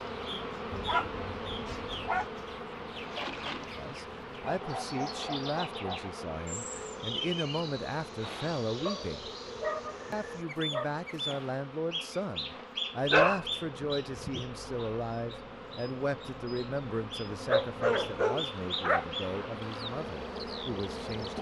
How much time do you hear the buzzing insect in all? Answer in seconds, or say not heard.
21 s.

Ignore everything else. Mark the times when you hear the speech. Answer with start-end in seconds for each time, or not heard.
3.6-9.3, 10.1-21.3.